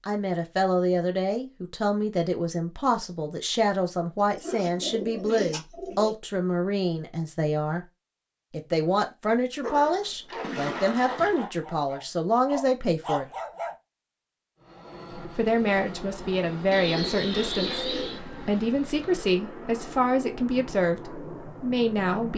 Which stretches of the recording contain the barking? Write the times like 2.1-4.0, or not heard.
9.6-13.8.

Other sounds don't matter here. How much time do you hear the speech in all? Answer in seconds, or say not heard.
20 s.